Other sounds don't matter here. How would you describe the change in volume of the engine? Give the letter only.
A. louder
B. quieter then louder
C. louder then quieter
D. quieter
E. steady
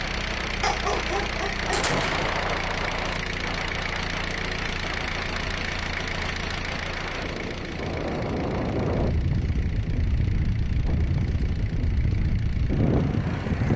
D.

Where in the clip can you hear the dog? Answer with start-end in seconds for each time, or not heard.
0.6-1.9.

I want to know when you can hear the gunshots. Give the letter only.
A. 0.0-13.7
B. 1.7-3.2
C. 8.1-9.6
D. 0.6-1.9
B.